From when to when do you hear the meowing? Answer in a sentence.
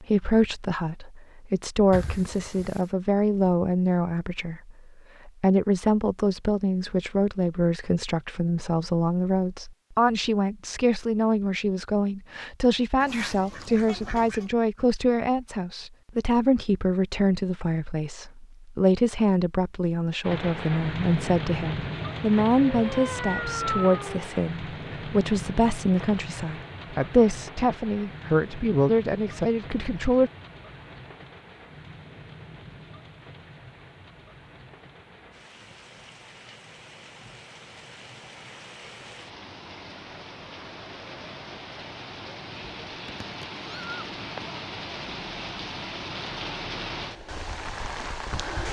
The meowing can be heard from 1.9 to 2.9 s, from 22.8 to 24.2 s and from 43.0 to 44.5 s.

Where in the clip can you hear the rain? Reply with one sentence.
You can hear the rain from 20.2 to 48.6 s.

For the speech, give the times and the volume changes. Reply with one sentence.
You can hear the speech from 0.0 to 30.3 s, at a steady volume.